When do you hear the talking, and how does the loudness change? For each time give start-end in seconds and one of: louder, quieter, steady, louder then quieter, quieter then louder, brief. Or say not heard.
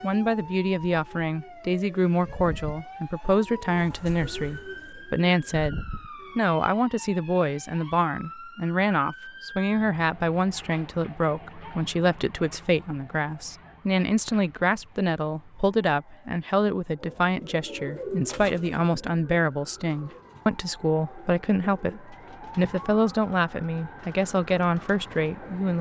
0.0-25.7 steady.